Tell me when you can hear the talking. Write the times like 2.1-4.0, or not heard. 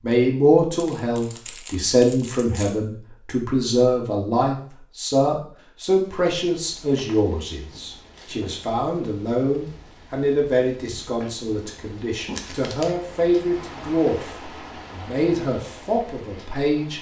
0.0-16.9.